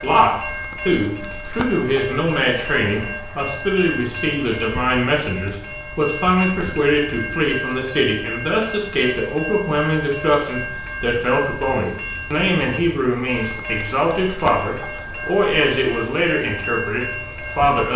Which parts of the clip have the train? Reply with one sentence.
You can hear the train from 0.0 to 17.9 s.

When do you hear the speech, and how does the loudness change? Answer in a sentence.
The speech can be heard from 0.0 to 17.9 s, at a steady volume.